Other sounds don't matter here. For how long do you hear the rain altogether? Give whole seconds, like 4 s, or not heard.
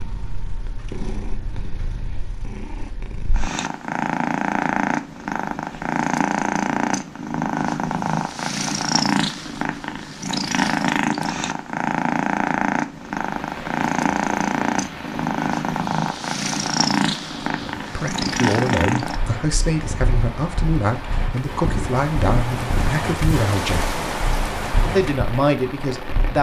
13 s.